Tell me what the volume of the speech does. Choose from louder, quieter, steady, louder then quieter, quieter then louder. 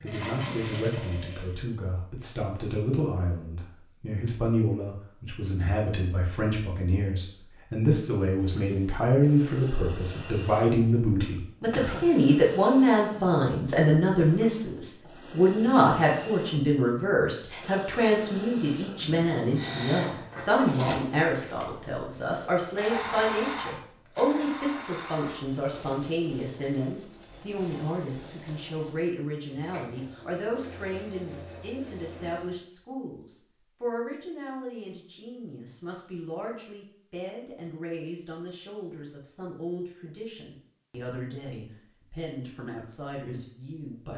louder then quieter.